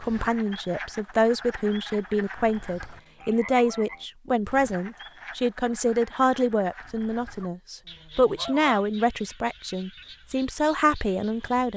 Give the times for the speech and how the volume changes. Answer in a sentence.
You can hear the speech from 0.0 to 11.7 s, at a steady volume.